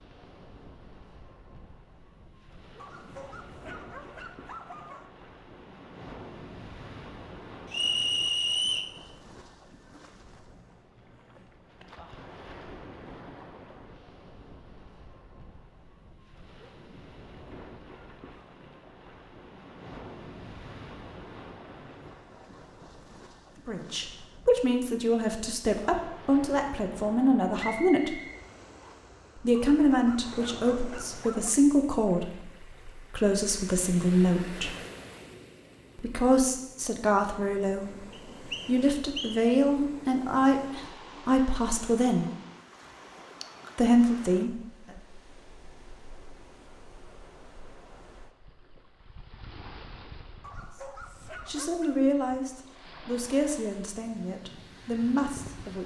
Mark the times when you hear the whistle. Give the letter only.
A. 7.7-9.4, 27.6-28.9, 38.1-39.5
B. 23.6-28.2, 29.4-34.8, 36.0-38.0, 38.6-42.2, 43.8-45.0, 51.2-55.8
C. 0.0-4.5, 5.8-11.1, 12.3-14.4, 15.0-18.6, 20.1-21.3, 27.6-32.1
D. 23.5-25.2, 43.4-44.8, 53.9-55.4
A.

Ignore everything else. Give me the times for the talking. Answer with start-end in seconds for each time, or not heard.
23.6-28.2, 29.4-34.8, 36.0-38.0, 38.6-42.2, 43.8-45.0, 51.2-55.8.